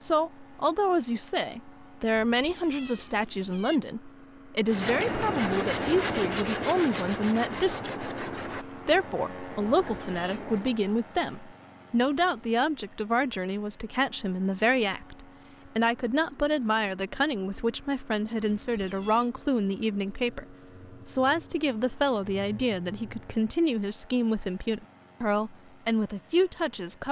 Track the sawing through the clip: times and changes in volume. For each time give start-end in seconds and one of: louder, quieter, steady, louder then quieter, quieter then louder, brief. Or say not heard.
4.7-10.8 quieter.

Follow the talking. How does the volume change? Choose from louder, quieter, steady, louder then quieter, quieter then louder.
steady.